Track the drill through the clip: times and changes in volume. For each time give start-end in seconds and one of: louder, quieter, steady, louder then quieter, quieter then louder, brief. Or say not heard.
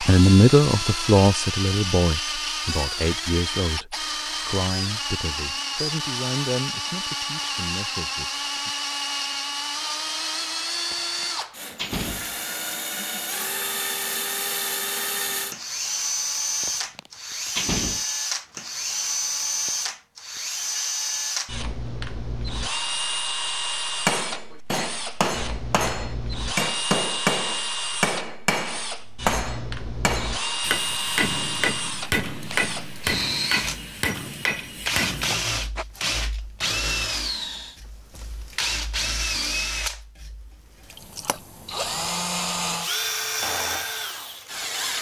0.0-44.9 steady.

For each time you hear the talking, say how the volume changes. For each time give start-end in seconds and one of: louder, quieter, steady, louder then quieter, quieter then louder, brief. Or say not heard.
0.0-8.7 quieter.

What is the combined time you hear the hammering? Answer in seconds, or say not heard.
12 s.